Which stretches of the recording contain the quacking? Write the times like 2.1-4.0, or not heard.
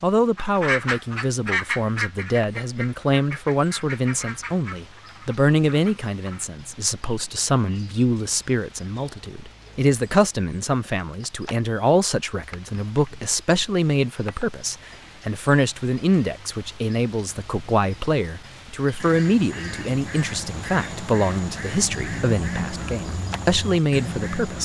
0.3-6.5, 18.9-24.6.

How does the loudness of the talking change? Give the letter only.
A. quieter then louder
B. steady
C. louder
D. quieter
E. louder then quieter
B.